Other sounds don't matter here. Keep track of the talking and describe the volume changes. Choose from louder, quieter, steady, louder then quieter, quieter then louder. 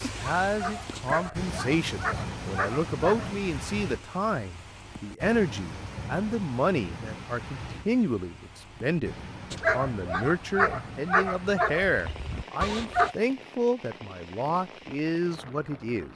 steady.